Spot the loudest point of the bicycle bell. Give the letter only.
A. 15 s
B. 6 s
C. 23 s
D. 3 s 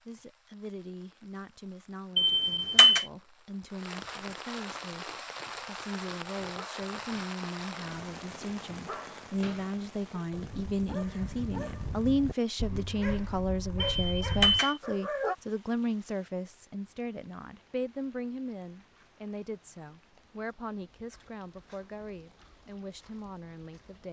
D.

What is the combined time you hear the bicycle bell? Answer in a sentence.
The bicycle bell can be heard for 2 seconds in total.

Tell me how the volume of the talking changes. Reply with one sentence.
The loudness of the talking goes up, then down.